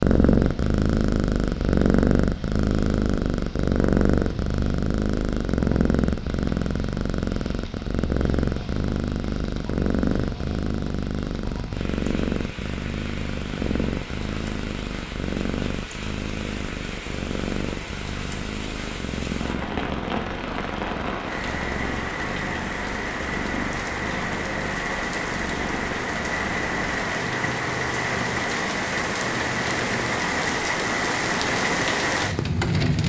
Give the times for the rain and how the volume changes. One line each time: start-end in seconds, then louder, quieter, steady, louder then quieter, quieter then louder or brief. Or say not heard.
0.0-33.0 louder.